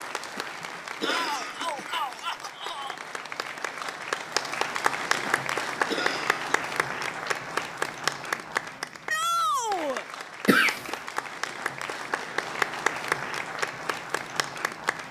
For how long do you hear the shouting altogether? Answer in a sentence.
The shouting can be heard for 3 seconds in total.